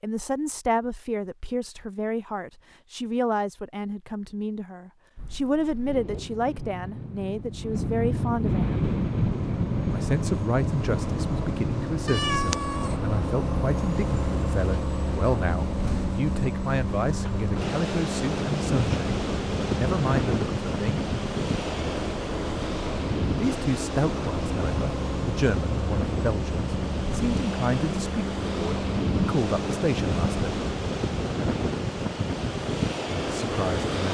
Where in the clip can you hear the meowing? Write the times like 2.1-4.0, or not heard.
12.1-12.9.